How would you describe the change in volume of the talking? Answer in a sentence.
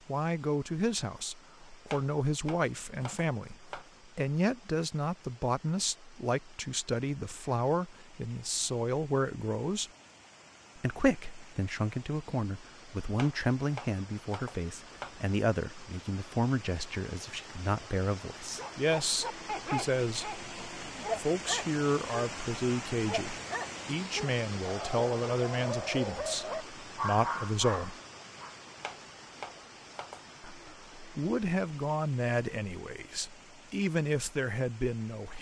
The volume of the talking stays about the same.